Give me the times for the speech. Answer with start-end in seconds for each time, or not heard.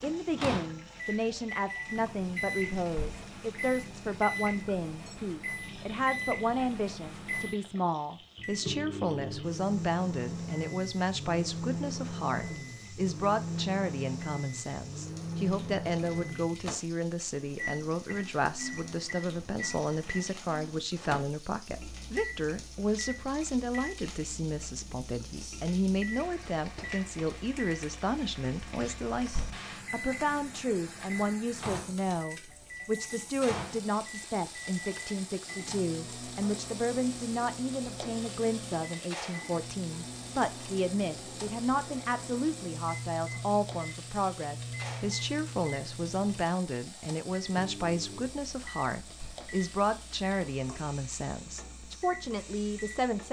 0.0-53.2.